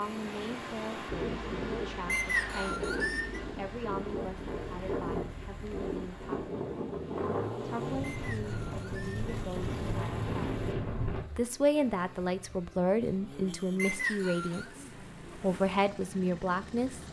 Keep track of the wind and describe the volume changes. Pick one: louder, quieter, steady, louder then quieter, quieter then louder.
steady.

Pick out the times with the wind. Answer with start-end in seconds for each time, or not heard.
0.0-11.2.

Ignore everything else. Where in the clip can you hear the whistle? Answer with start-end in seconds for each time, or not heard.
2.0-3.4, 8.1-9.2, 13.8-14.7.